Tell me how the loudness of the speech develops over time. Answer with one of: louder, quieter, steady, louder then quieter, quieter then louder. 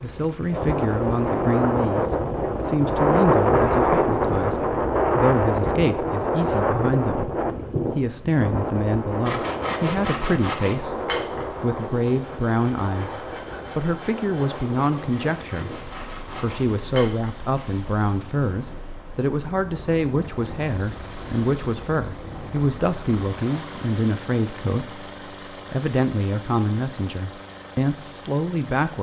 steady.